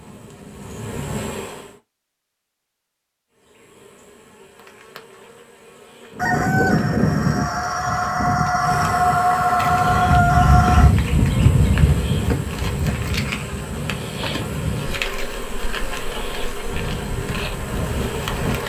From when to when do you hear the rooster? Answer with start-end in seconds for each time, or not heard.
6.2-10.9.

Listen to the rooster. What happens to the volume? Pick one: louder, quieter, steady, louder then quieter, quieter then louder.
louder.